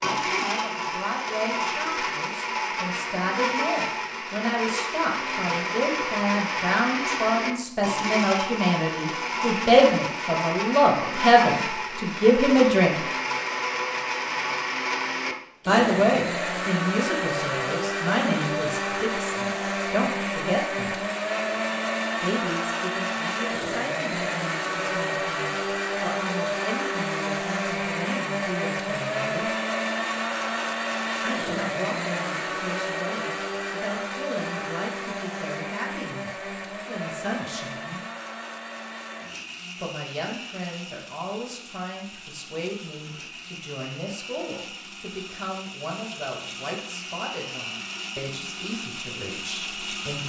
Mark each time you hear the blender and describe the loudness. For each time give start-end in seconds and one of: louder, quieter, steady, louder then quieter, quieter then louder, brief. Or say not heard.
0.0-50.2 quieter.